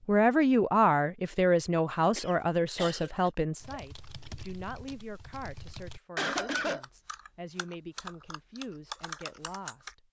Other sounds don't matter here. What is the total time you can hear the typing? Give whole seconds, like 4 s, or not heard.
6 s.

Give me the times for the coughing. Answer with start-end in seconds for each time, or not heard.
2.1-3.3, 5.7-6.8.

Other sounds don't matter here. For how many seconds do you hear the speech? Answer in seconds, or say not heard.
10 s.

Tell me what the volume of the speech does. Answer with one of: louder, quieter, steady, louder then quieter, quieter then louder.
quieter.